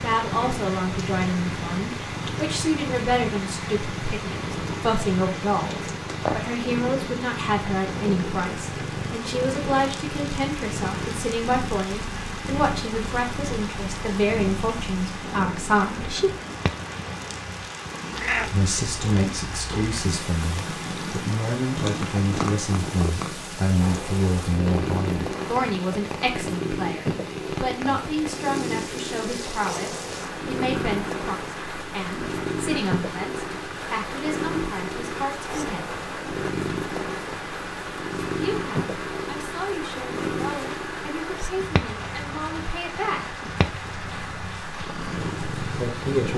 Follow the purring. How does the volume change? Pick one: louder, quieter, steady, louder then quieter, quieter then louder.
steady.